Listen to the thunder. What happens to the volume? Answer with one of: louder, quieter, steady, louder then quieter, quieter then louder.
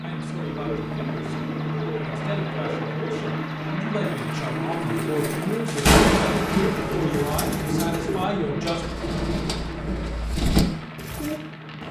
quieter.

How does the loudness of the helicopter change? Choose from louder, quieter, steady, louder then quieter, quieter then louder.
quieter.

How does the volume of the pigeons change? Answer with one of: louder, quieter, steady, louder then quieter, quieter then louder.
louder.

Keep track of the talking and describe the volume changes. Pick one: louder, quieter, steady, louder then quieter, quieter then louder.
louder.